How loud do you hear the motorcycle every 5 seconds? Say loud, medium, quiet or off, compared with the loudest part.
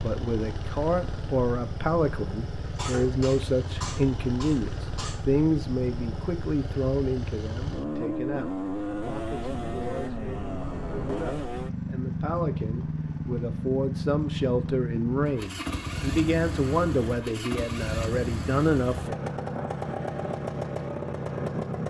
medium, loud, loud, loud, loud.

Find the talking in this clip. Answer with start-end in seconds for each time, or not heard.
0.0-19.2.